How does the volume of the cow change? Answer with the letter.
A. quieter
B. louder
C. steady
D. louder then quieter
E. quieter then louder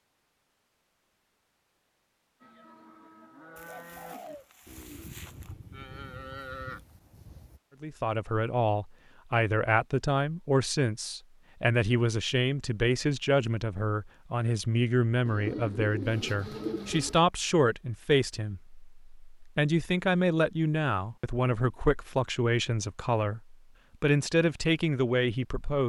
B.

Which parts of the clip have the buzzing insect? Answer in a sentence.
The buzzing insect can't be heard in this clip.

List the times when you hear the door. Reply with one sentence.
You can't hear the door here.